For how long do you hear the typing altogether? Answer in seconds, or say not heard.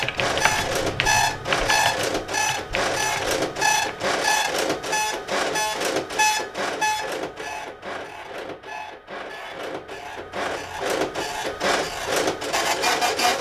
4 s.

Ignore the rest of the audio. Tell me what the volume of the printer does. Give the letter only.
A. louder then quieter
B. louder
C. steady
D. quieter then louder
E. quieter
D.